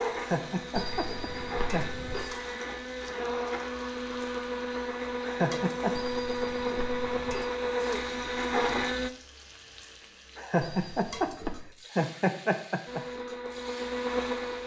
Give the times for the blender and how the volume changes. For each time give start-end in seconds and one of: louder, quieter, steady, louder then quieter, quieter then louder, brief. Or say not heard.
0.0-9.1 louder
12.8-14.6 brief.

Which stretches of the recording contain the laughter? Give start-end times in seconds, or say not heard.
0.1-1.9, 5.2-6.0, 10.3-13.0.